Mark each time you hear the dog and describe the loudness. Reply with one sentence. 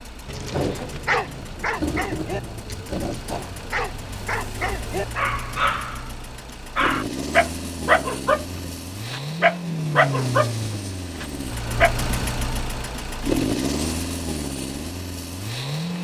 You can hear the dog from 0.2 to 6.0 s, getting quieter then louder; and from 6.8 to 12.1 s, getting quieter.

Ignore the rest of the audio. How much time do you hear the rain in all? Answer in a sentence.
You can't hear the rain here.